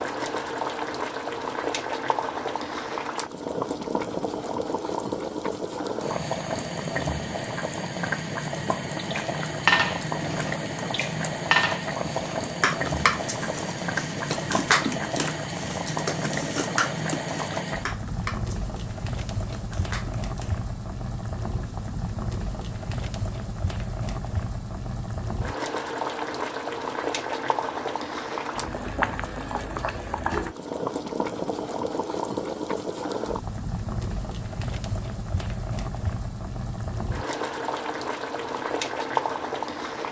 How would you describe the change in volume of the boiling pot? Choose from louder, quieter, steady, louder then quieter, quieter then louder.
steady.